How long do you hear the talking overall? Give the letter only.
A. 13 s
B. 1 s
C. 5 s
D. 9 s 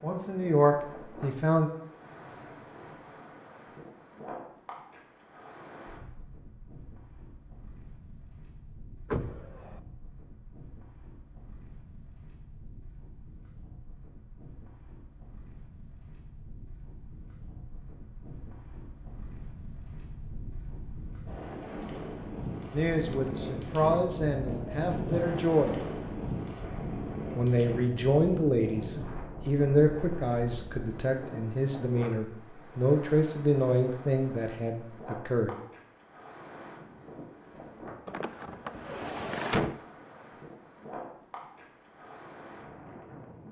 A.